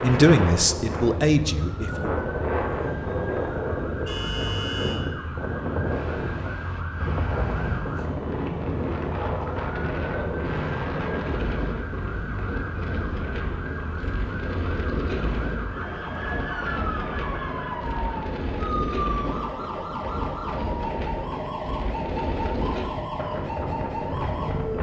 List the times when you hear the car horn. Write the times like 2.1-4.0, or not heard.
4.0-5.0.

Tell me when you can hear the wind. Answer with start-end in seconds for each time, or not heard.
0.0-24.7.